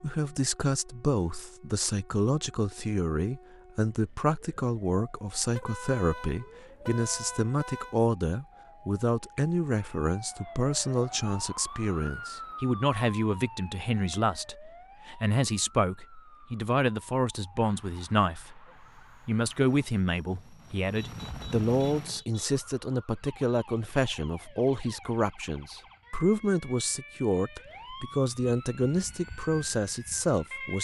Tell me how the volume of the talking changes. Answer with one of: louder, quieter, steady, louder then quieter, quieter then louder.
steady.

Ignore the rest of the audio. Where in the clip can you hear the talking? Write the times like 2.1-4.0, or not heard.
0.0-18.6, 19.2-30.8.